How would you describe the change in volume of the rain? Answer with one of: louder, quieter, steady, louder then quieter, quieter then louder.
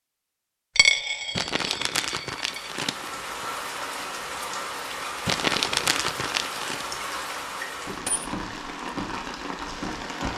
steady.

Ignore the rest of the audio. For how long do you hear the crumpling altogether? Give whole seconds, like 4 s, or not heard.
4 s.